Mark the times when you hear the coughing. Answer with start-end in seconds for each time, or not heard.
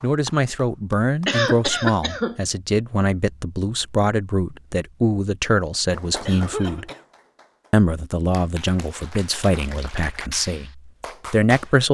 1.2-2.4, 6.2-7.0.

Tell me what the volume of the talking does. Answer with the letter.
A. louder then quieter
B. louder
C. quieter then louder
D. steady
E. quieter
D.